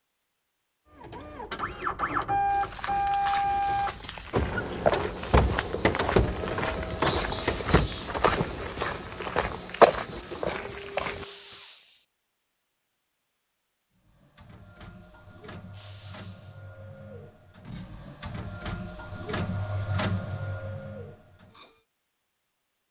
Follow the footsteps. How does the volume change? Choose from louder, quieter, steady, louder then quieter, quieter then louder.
louder.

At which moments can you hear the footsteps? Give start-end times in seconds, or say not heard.
2.5-11.2.